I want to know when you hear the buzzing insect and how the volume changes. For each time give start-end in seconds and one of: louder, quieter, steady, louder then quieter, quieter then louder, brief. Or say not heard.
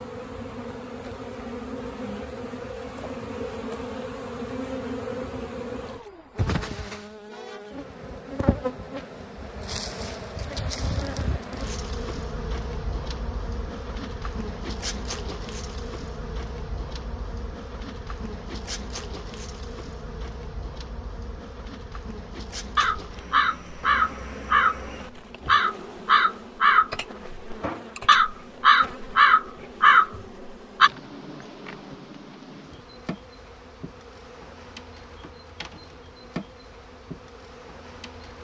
0.0-38.4 quieter.